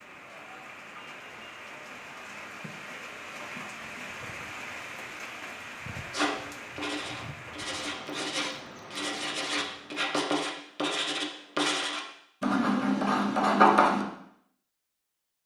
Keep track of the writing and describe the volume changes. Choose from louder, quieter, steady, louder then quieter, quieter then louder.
louder.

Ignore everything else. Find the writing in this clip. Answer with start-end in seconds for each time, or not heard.
6.1-14.1.